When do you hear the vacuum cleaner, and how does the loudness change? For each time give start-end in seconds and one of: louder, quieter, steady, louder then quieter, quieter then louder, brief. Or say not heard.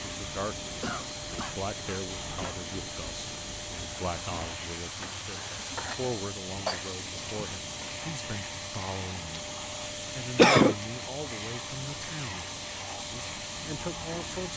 0.0-14.5 steady.